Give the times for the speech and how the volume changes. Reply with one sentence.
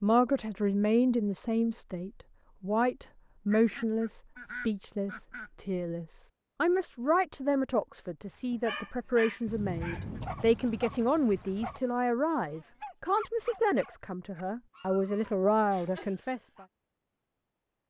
The speech can be heard from 0.0 to 16.6 s, at a steady volume.